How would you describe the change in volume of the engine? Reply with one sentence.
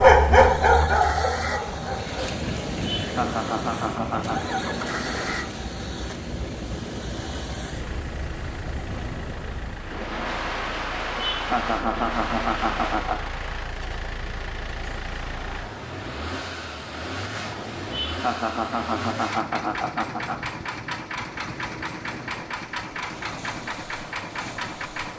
The volume of the engine goes down, then up.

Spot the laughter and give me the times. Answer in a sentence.
The laughter can be heard from 2.8 to 4.5 s, from 11.2 to 13.3 s and from 17.9 to 20.5 s.